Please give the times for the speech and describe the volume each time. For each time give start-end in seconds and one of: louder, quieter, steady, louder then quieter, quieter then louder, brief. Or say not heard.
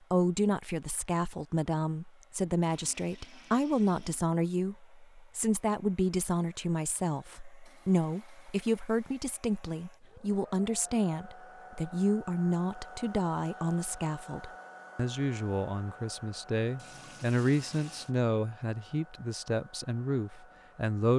0.1-21.1 steady.